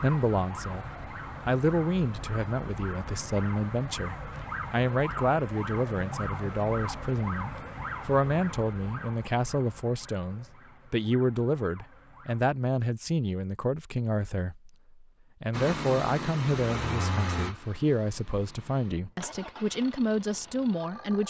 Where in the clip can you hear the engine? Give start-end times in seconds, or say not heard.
15.5-21.2.